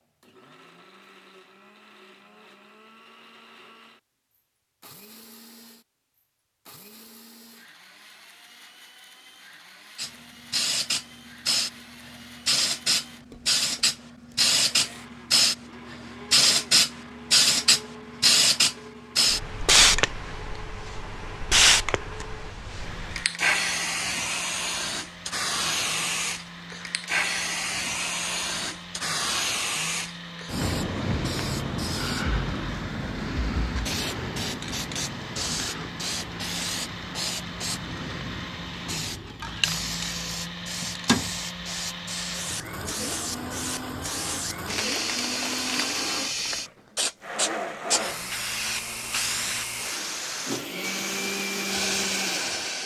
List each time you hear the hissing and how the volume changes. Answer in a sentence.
The hissing can be heard from 9.9 to 52.8 s, getting quieter.